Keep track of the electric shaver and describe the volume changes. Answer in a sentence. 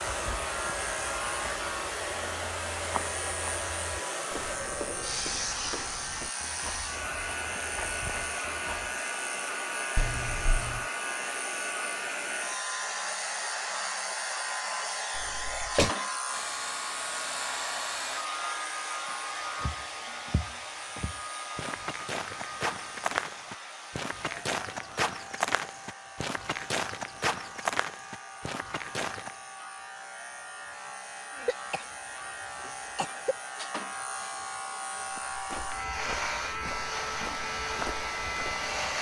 The volume of the electric shaver goes down, then up.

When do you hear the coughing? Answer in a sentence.
The coughing can be heard from 9.9 to 10.8 s, from 15.2 to 15.9 s and from 31.3 to 33.4 s.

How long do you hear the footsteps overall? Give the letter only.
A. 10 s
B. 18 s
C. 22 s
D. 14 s
C.